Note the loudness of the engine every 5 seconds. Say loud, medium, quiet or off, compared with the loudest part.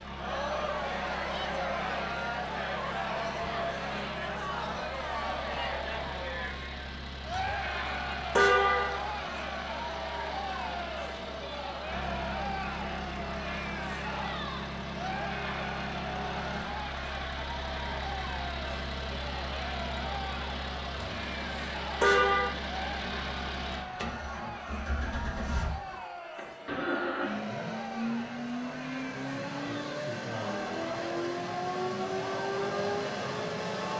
medium, medium, medium, medium, medium, loud, loud.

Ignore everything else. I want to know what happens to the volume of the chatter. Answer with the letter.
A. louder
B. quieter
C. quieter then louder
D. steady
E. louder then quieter
B.